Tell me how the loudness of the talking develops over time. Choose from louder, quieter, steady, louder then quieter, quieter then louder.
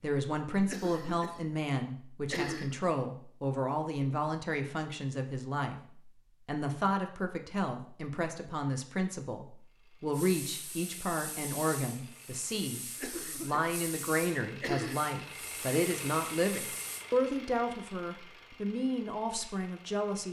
steady.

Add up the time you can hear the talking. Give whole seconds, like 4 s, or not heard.
20 s.